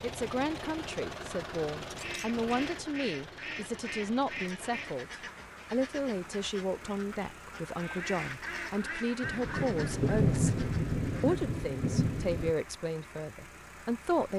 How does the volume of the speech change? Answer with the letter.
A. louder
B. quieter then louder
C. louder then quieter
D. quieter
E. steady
E.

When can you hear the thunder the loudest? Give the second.
10 s.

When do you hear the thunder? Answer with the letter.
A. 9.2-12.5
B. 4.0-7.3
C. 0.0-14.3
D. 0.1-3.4
A.